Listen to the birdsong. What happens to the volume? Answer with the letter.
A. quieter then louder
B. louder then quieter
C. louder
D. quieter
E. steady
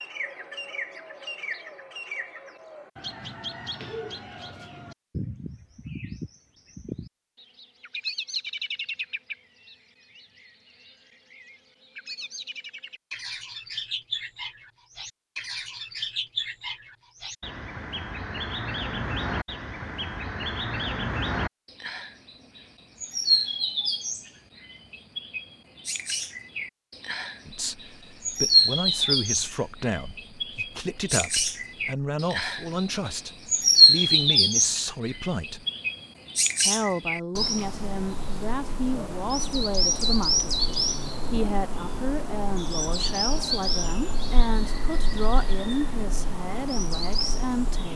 B.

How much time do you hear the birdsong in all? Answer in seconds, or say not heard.
48 s.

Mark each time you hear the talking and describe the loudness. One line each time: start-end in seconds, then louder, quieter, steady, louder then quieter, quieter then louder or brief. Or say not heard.
27.4-35.6 steady
36.6-47.9 steady.